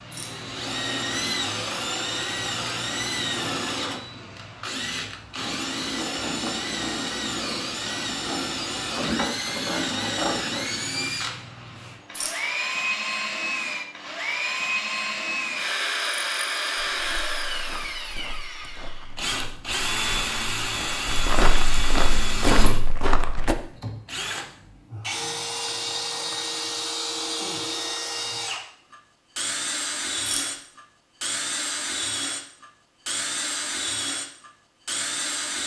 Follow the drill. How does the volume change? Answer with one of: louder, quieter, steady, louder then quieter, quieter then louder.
steady.